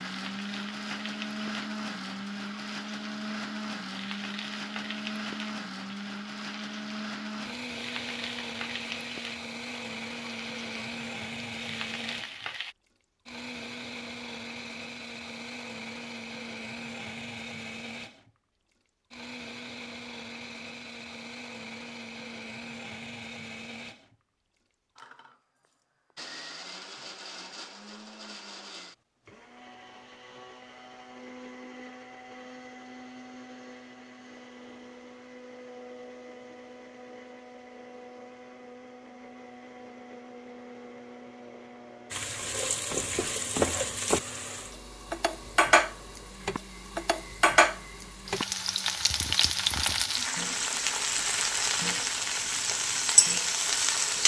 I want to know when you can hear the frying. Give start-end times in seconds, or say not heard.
0.0-12.8, 42.1-54.2.